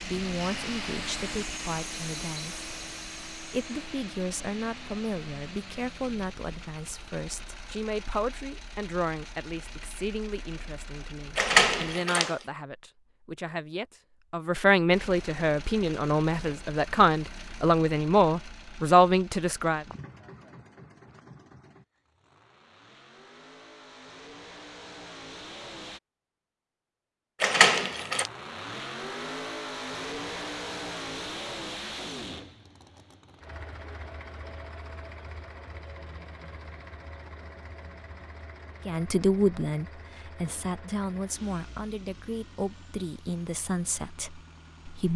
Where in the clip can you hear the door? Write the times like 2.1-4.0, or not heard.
11.3-12.3, 27.4-28.3.